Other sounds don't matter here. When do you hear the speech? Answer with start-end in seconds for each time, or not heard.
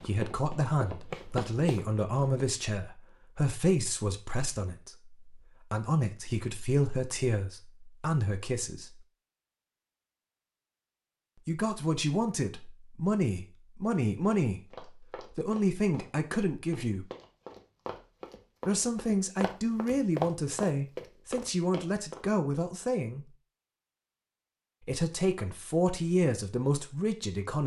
0.0-9.1, 11.4-17.1, 18.6-23.2, 24.9-27.6.